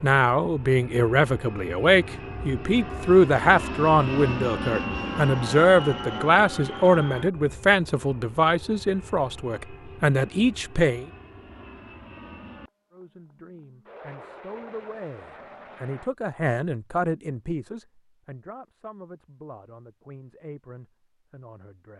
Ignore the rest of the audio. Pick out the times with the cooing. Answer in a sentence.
You can't hear the cooing here.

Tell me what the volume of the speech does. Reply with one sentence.
The loudness of the speech goes down.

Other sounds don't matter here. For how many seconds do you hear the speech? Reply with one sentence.
You can hear the speech for 20 seconds altogether.